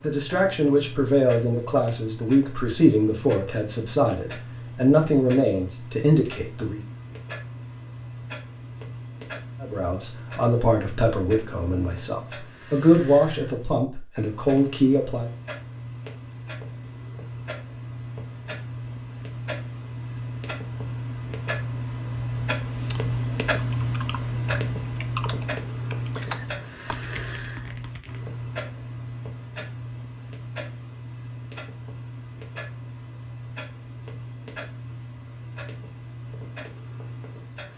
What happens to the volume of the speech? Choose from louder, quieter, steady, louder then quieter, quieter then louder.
steady.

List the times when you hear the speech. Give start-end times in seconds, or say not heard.
0.0-6.8, 9.6-15.3.